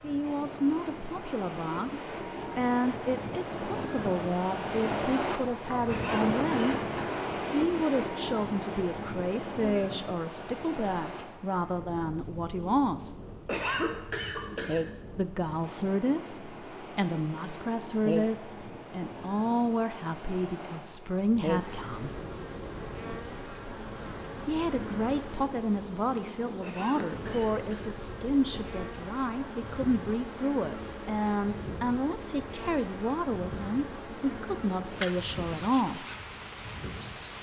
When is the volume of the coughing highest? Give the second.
14 s.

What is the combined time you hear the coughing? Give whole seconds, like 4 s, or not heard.
4 s.